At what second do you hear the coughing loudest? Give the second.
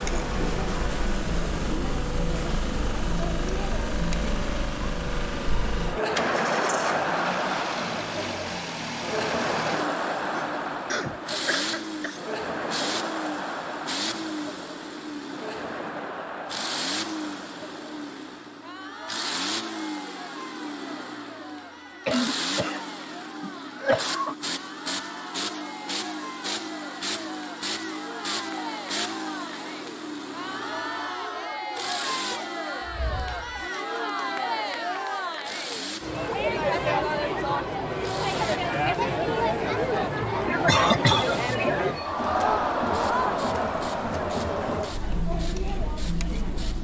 41 s.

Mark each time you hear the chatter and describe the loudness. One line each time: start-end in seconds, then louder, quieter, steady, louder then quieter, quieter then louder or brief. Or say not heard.
0.0-46.8 quieter then louder.